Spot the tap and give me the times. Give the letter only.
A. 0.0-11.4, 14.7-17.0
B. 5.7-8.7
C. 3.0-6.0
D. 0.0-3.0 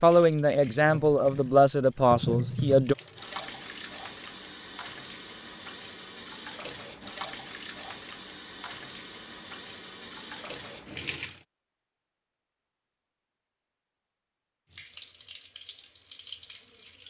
A.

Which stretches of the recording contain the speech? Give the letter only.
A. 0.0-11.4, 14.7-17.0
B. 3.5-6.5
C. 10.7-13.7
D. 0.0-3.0
D.